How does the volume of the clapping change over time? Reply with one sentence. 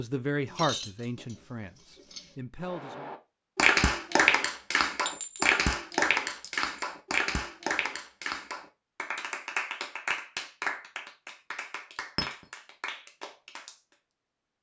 The volume of the clapping goes down.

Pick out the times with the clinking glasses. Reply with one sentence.
You can hear the clinking glasses from 0.5 to 2.4 s and from 5.0 to 6.7 s.